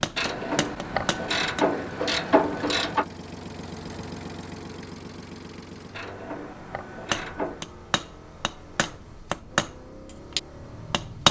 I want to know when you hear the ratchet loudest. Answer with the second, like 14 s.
2 s.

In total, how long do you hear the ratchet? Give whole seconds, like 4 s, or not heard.
5 s.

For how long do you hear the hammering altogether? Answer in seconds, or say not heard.
6 s.